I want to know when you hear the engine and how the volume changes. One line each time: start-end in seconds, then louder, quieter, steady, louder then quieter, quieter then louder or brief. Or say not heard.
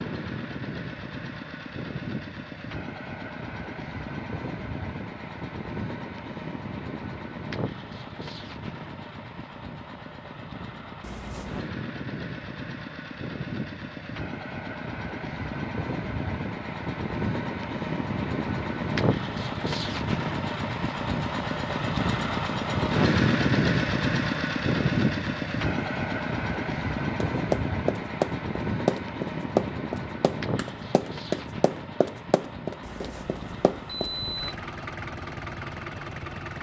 0.0-36.5 louder then quieter.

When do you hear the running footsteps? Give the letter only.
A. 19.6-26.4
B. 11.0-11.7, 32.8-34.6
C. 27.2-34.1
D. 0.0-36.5
C.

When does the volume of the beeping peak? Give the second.
34 s.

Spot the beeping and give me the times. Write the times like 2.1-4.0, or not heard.
11.0-11.7, 32.8-34.6.